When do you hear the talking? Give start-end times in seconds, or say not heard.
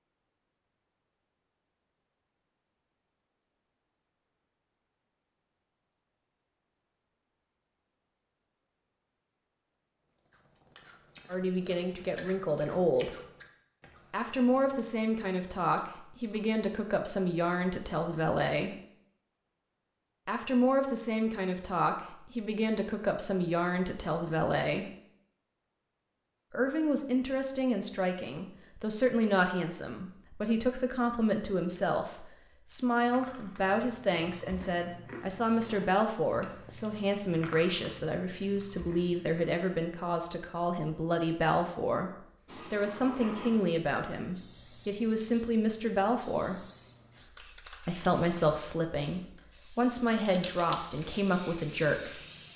11.3-13.2, 14.1-18.8, 20.2-24.9, 26.5-46.6, 47.9-52.2.